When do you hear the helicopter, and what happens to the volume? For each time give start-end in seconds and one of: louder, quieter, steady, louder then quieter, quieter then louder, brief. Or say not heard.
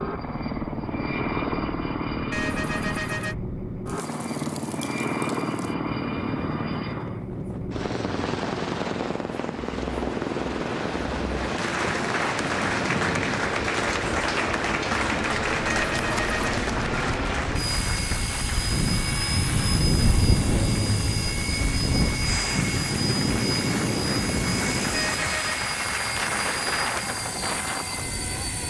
0.0-28.6 steady.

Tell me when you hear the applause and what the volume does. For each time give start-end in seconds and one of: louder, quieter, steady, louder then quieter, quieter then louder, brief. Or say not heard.
11.4-27.4 quieter then louder.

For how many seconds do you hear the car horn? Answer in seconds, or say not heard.
3 s.